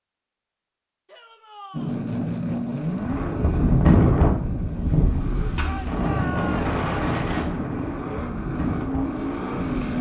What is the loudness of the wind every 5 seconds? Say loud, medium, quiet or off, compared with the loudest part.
loud, medium.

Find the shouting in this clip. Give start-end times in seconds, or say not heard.
1.1-2.0, 5.7-6.8.